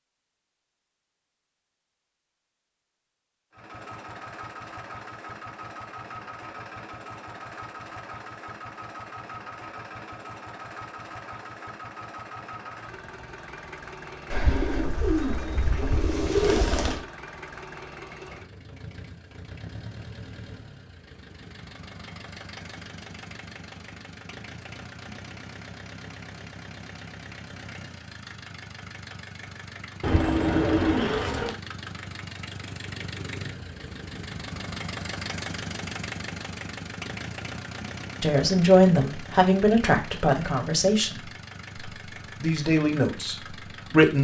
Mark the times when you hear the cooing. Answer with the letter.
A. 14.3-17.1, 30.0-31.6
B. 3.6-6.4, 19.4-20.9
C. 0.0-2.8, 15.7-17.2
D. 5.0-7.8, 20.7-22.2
A.